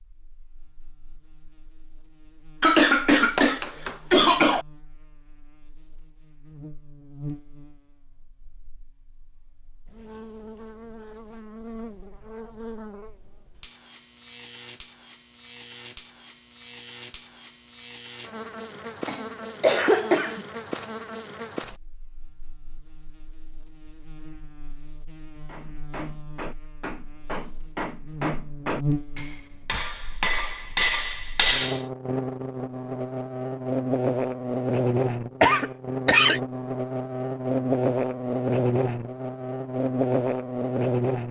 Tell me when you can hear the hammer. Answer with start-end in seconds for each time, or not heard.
25.4-31.8.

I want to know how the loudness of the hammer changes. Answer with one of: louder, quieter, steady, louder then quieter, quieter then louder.
louder.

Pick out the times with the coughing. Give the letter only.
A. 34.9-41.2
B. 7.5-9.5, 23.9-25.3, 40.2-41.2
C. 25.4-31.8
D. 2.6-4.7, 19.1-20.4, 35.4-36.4
D.